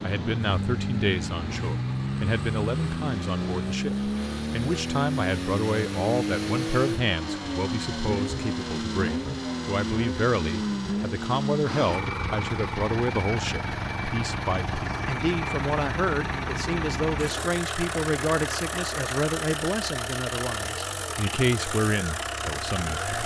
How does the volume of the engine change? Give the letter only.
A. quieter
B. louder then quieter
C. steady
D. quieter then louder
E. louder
C.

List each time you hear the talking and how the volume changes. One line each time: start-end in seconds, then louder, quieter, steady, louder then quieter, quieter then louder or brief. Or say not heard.
0.0-23.2 steady.